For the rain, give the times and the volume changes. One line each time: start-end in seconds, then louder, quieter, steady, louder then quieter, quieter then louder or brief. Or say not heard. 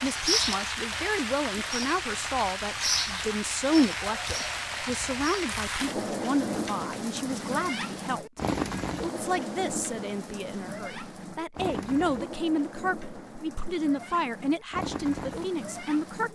0.0-16.3 quieter.